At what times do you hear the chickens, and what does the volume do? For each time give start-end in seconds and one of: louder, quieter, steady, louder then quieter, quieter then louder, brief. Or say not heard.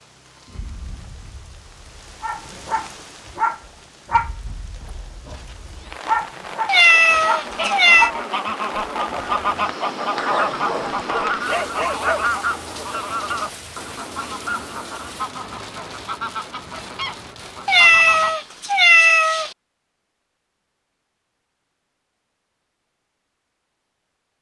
7.0-18.4 quieter.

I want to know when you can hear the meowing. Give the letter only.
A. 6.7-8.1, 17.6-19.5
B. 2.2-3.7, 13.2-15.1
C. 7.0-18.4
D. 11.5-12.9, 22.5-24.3
A.